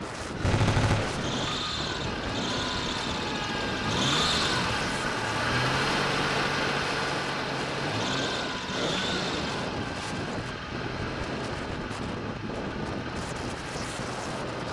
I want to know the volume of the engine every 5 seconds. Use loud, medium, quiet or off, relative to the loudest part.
loud, loud, medium.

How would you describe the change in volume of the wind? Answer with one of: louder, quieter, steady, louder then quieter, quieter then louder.
steady.